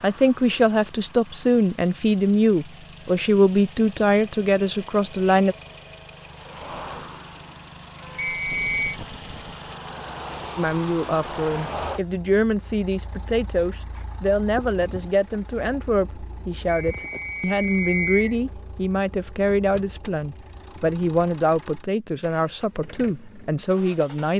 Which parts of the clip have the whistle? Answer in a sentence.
You can hear the whistle from 8.2 to 8.9 s and from 16.6 to 18.4 s.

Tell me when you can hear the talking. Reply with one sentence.
The talking can be heard from 0.0 to 5.5 s and from 10.6 to 24.3 s.